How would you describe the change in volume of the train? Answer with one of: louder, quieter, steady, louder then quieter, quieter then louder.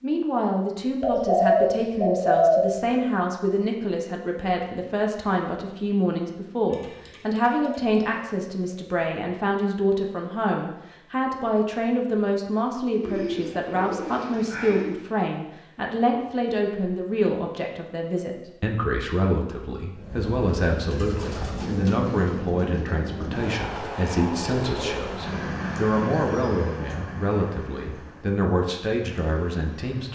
quieter.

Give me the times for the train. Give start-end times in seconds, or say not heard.
19.9-30.1.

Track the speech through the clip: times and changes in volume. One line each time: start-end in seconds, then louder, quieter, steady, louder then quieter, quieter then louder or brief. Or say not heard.
0.0-30.1 steady.